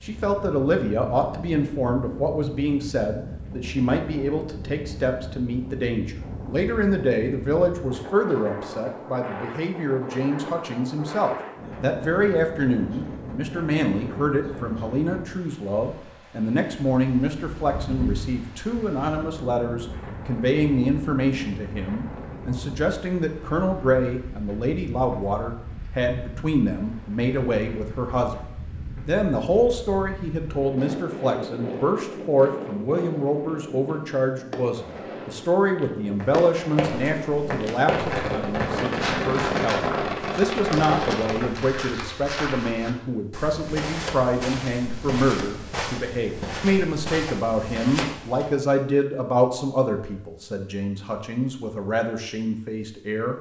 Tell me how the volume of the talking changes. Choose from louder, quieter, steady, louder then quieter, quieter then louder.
steady.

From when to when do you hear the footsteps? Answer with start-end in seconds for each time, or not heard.
36.2-48.5.